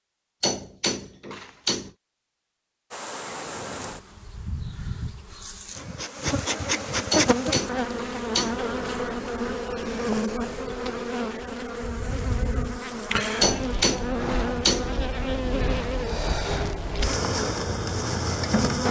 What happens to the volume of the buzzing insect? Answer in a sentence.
The volume of the buzzing insect goes up.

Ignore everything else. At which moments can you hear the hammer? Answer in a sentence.
The hammer can be heard from 0.4 to 1.9 s, from 7.1 to 8.6 s and from 13.4 to 14.9 s.